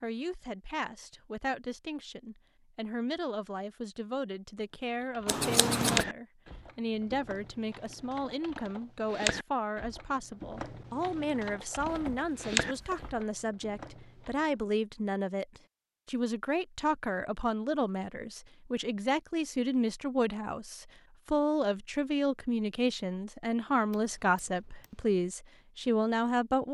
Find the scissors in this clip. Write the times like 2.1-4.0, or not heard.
5.2-6.0, 23.9-25.1.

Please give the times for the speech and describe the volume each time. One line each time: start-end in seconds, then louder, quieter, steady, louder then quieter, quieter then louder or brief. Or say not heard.
0.0-26.7 louder.